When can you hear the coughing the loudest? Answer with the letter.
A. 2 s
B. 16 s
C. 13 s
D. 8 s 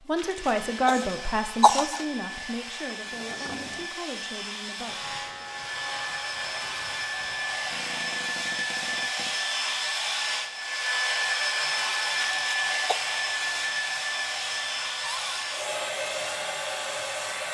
A.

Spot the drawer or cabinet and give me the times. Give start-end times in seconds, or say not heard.
3.0-3.9, 7.7-9.4, 15.0-15.4.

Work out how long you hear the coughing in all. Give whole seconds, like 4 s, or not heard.
3 s.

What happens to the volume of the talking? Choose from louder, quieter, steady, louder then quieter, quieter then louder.
quieter.